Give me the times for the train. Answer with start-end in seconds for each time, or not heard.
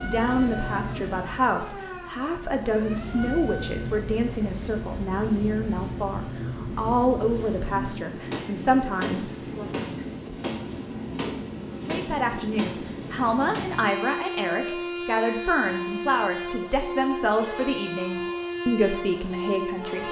0.0-20.0.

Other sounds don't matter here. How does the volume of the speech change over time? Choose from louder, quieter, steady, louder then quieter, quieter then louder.
steady.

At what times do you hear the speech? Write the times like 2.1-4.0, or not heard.
0.0-9.7, 11.8-20.0.